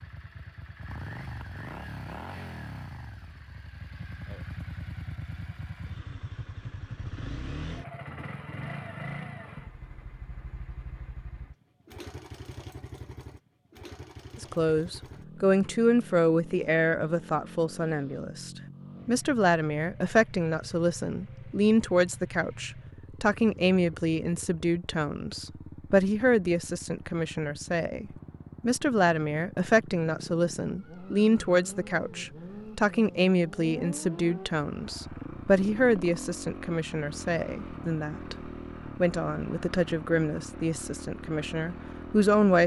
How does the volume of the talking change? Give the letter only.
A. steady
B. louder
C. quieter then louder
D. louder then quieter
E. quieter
A.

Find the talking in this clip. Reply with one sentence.
The talking can be heard from 14.4 to 38.4 s and from 39.0 to 42.6 s.